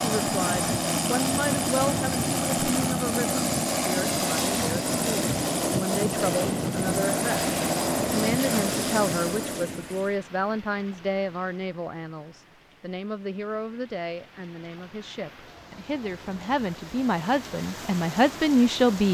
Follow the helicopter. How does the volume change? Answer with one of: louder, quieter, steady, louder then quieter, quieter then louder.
steady.